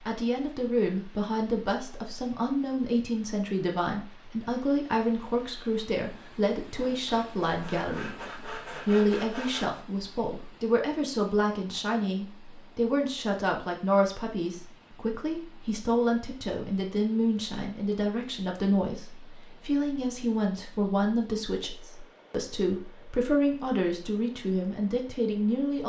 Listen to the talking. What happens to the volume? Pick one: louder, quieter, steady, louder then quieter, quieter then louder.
steady.